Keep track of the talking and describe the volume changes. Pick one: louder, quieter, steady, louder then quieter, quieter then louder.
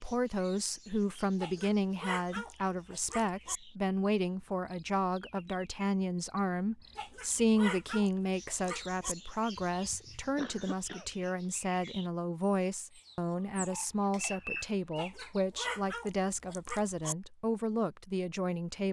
steady.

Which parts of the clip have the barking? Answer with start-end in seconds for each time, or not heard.
1.4-3.6, 7.0-9.2, 14.9-17.1.